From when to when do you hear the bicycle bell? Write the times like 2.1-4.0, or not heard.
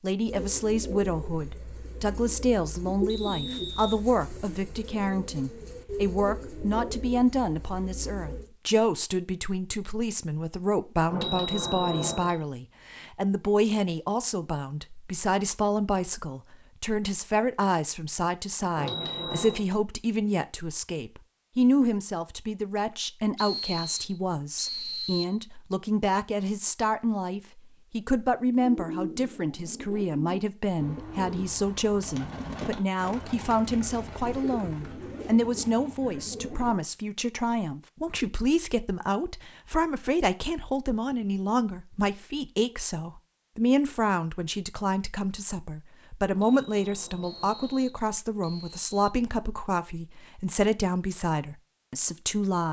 11.1-12.3, 18.8-19.6, 46.3-48.0.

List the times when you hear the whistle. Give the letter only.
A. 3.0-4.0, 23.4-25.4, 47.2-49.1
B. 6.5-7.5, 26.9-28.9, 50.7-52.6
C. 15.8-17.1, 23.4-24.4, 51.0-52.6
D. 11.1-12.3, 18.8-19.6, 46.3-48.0
A.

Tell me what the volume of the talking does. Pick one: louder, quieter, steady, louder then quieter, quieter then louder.
steady.